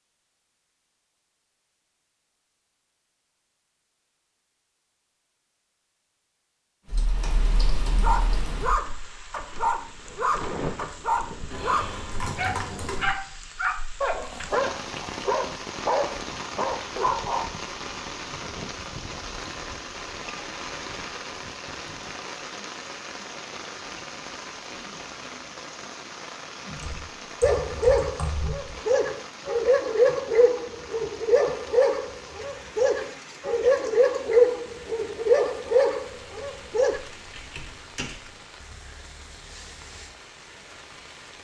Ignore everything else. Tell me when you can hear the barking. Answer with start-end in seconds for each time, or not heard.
7.9-17.4, 27.4-37.0.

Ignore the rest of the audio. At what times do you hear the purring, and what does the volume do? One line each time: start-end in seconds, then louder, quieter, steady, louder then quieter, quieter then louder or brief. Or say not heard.
not heard.